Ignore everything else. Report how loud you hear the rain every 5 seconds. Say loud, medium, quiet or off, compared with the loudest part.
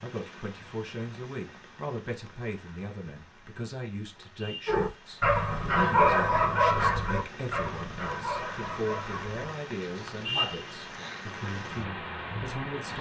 quiet, medium, loud.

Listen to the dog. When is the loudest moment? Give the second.
6 s.